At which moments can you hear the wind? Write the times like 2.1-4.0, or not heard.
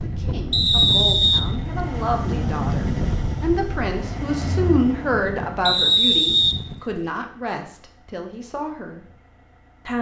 0.0-6.8.